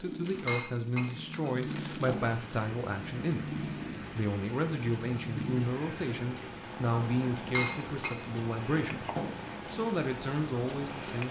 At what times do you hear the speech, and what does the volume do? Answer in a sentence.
You can hear the speech from 0.0 to 11.2 s, at a steady volume.